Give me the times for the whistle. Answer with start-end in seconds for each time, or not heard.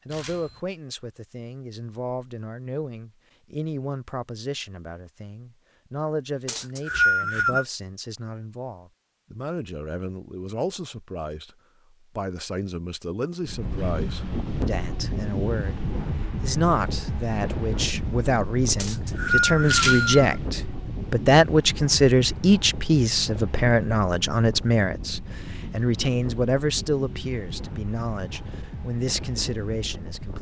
6.5-7.7, 18.8-20.2.